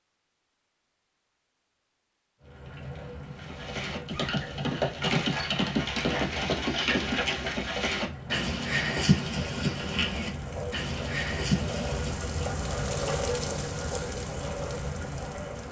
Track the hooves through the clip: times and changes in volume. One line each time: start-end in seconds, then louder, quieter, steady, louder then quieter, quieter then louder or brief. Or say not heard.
3.4-12.3 steady.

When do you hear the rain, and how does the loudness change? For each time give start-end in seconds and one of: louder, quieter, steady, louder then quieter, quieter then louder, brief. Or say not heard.
2.4-15.6 louder.